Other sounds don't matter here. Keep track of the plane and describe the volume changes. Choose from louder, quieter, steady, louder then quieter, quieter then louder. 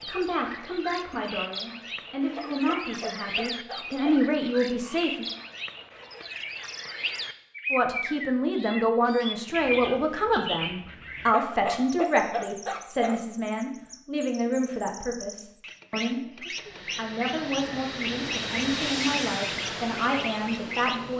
louder then quieter.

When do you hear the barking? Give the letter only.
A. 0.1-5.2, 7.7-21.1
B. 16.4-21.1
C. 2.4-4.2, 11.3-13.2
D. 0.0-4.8
C.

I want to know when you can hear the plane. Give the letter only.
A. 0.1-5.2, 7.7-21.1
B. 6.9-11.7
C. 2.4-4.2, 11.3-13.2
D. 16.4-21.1
D.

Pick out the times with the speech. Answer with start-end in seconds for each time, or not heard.
0.1-5.2, 7.7-21.1.